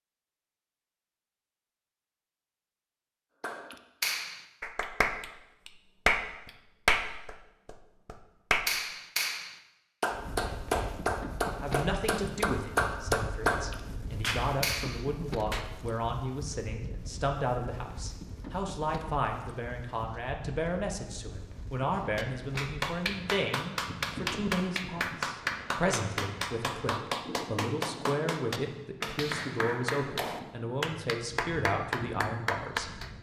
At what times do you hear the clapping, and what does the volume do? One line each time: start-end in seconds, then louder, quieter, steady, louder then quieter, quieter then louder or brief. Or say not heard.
3.4-15.7 steady
21.9-33.1 steady.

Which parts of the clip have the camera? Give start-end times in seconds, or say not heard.
not heard.